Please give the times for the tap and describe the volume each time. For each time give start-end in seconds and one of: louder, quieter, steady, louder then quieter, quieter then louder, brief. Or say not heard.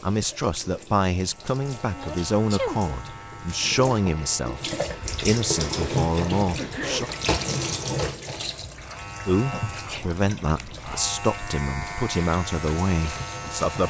0.0-13.8 louder then quieter.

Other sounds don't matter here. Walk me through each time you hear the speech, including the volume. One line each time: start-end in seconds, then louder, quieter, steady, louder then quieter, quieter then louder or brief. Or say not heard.
0.0-7.1 steady
9.2-13.8 steady.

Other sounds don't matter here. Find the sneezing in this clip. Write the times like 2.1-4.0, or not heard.
1.9-2.8, 6.5-7.2, 9.3-10.9.